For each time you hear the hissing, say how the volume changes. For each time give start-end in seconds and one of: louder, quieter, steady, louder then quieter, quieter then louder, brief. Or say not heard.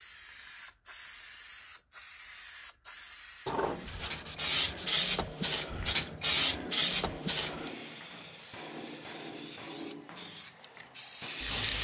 0.0-11.7 louder then quieter.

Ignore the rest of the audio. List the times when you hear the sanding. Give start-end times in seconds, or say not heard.
3.5-5.0.